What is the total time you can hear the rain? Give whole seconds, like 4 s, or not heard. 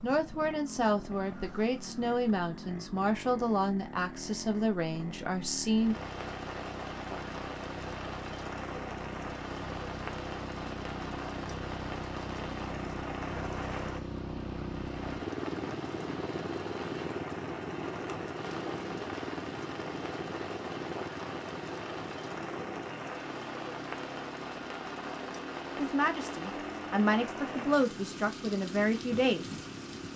24 s.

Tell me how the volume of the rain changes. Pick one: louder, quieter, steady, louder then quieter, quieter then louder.
steady.